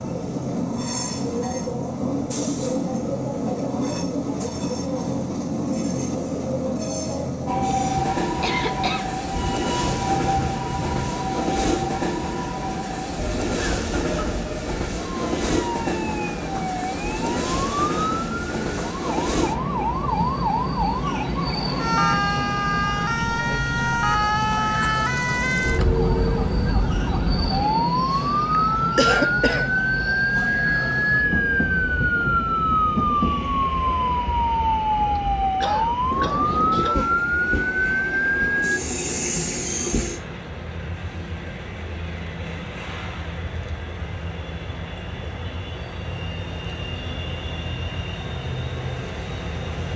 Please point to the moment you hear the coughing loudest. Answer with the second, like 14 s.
29 s.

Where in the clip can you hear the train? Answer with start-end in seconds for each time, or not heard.
0.0-49.9.